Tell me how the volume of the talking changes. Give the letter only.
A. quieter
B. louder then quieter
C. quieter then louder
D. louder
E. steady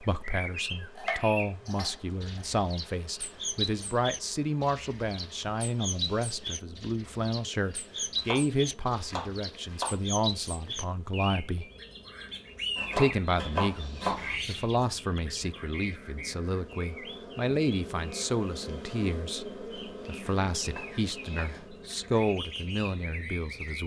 E.